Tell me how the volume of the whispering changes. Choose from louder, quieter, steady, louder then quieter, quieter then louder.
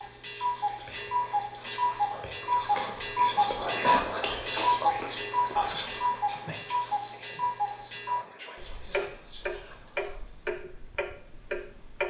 louder then quieter.